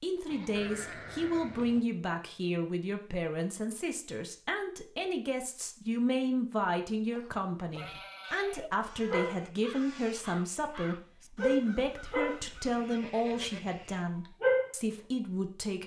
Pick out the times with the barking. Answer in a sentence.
The barking can be heard from 9.1 to 14.7 s.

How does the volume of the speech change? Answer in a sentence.
The volume of the speech stays about the same.